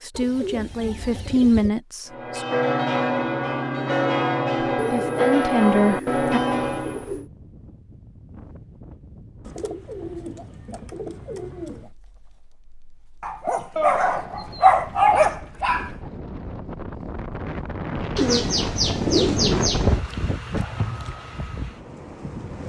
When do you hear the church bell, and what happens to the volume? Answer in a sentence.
The church bell can be heard from 2.1 to 7.1 s, at a steady volume.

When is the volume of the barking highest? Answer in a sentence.
The loudest moment of the barking is at 15 seconds.